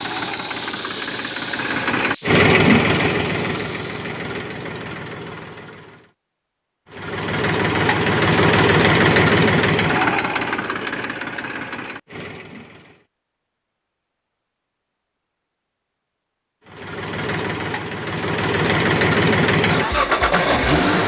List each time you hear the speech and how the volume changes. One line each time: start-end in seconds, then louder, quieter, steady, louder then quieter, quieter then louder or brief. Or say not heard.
not heard.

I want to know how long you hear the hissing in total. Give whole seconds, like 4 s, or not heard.
4 s.